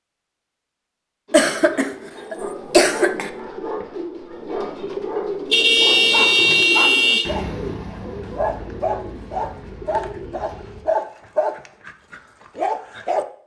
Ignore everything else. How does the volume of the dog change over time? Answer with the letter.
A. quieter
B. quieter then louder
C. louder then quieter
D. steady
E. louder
E.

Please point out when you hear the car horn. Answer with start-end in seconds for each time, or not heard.
5.5-7.3.